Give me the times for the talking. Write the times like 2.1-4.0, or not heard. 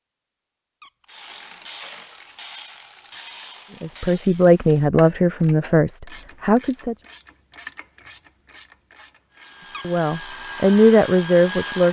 3.8-7.0, 9.8-11.8.